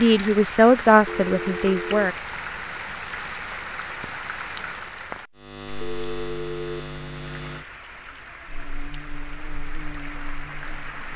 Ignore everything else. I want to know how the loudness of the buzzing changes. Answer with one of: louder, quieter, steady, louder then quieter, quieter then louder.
quieter then louder.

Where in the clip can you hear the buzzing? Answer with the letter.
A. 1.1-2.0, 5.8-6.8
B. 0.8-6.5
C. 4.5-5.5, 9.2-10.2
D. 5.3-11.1
D.